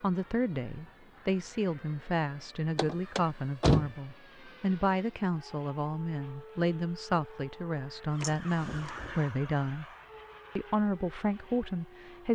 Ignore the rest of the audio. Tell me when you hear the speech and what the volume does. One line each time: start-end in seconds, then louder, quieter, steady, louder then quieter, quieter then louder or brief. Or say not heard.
0.0-9.8 steady
10.6-12.3 brief.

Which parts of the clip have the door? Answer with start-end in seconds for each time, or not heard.
2.8-3.9, 8.2-9.2.